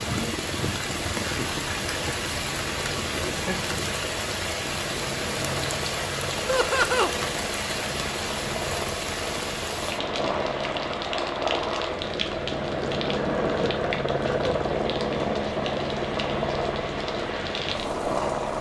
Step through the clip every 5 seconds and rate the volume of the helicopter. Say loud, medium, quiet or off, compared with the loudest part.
medium, medium, loud, loud.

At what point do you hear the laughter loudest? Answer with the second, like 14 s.
7 s.